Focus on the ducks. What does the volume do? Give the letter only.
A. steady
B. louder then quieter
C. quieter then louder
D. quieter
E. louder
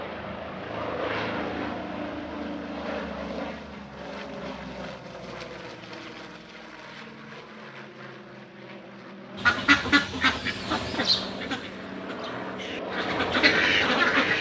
C.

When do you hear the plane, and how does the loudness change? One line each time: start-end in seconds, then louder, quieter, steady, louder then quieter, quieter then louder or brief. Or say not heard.
0.0-14.3 quieter then louder.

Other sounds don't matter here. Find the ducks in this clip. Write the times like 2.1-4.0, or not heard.
9.3-14.3.